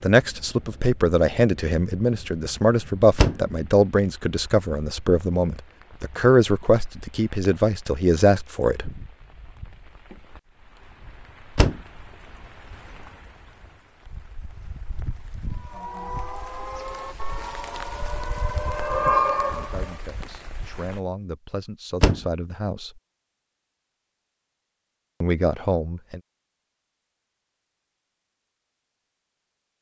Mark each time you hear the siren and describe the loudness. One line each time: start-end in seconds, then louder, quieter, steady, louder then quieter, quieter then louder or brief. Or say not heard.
15.5-20.0 louder.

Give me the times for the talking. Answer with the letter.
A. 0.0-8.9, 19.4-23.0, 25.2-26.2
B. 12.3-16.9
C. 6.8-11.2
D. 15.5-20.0
A.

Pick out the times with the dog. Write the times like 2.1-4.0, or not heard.
not heard.